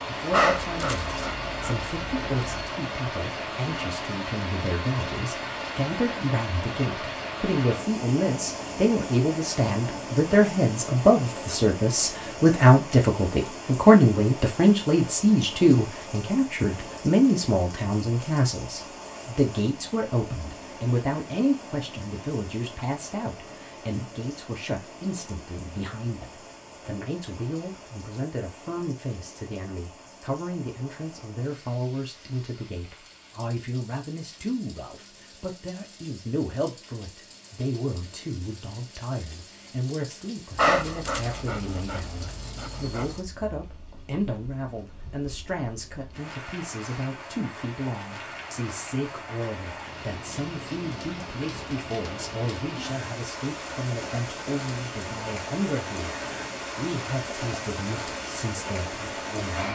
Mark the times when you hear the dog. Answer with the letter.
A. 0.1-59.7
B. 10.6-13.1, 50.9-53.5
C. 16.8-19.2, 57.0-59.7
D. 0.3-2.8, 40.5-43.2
D.